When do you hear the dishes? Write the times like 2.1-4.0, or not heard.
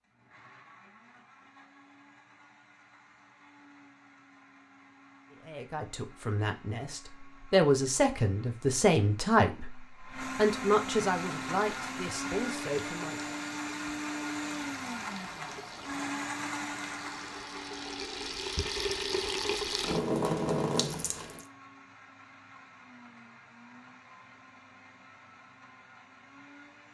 not heard.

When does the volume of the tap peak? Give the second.
20 s.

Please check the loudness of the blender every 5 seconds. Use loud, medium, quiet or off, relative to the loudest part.
quiet, quiet, loud, loud, quiet, quiet.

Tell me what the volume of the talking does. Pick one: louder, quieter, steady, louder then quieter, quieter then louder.
louder then quieter.